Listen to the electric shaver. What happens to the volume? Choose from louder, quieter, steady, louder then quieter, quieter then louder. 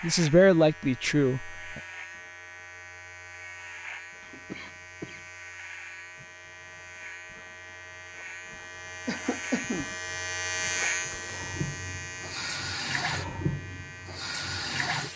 louder then quieter.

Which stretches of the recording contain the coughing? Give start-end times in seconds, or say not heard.
4.2-5.2, 9.1-9.9.